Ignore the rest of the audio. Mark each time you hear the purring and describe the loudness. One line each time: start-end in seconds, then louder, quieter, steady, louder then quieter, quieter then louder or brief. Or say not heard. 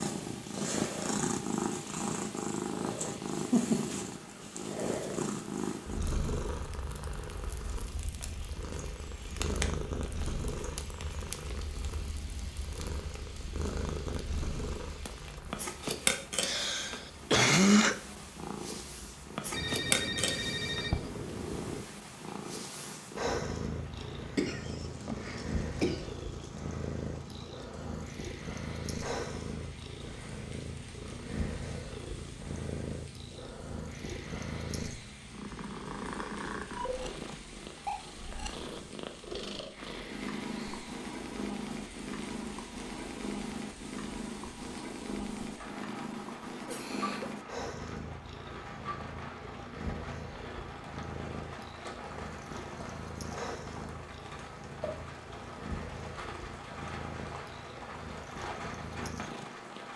0.0-59.9 quieter.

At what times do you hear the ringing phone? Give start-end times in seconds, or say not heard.
19.5-21.9.